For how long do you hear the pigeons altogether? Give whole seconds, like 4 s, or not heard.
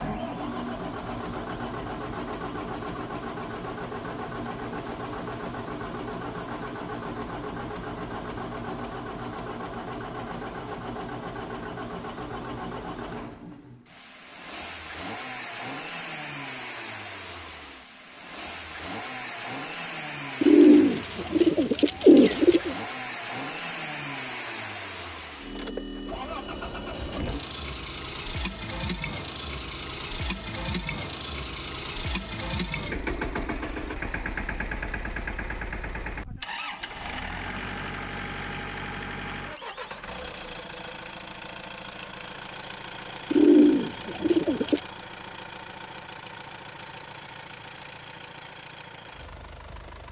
4 s.